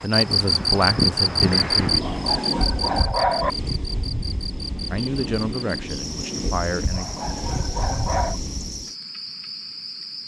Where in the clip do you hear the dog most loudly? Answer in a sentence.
The volume of the dog peaks at 3 seconds.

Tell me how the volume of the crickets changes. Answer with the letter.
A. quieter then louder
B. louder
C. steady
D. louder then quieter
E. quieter
E.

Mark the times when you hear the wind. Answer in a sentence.
You can hear the wind from 0.0 to 8.8 s.